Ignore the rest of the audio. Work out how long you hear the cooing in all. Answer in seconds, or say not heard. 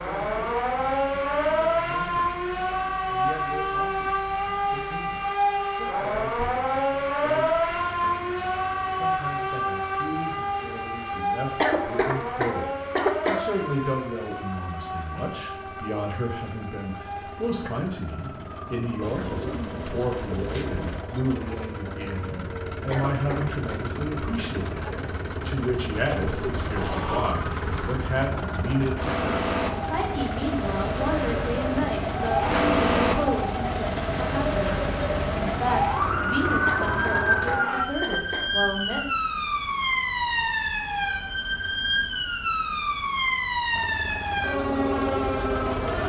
4 s.